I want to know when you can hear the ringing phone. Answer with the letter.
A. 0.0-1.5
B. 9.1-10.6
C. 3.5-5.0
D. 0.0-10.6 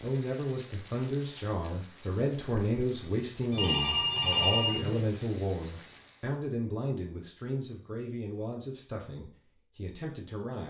C.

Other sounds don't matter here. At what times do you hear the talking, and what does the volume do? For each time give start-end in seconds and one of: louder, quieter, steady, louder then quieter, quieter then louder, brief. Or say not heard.
0.0-10.6 quieter.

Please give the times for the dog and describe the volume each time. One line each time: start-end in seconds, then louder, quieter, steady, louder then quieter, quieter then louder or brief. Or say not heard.
not heard.